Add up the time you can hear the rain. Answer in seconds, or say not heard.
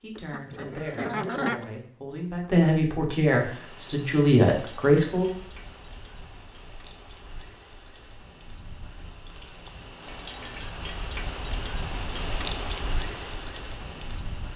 11 s.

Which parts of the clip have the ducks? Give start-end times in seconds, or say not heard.
0.1-1.6.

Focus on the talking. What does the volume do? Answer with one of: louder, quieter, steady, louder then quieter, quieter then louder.
louder.